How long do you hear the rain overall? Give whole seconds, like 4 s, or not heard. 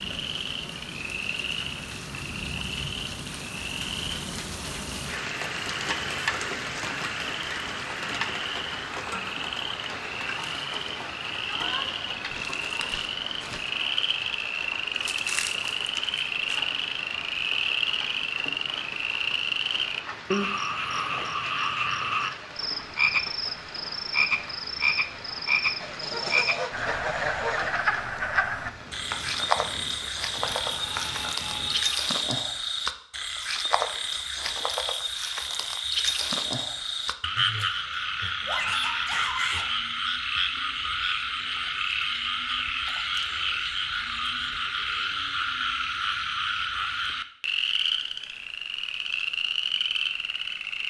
32 s.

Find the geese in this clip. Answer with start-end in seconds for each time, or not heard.
11.6-13.6, 25.8-27.9.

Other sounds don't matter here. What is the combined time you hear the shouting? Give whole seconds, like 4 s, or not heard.
3 s.